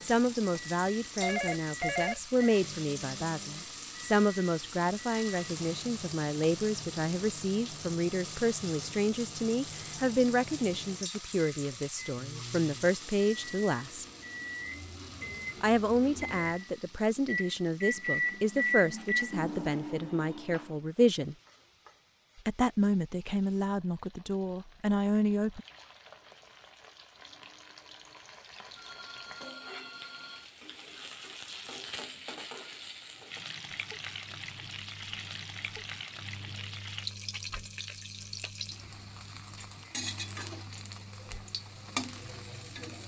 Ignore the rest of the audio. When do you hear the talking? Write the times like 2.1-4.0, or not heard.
0.0-14.1, 15.6-21.4, 22.4-25.6.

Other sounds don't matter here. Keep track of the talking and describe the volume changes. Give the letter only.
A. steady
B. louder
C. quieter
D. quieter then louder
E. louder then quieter
A.